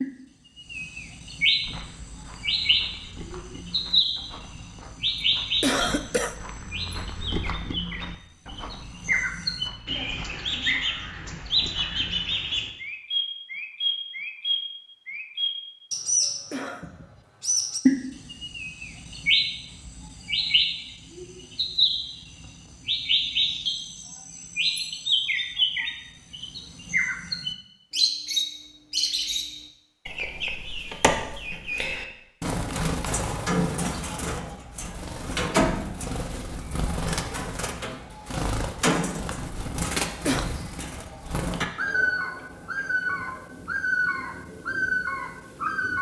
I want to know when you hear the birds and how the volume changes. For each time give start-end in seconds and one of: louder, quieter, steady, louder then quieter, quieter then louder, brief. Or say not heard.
0.0-45.9 steady.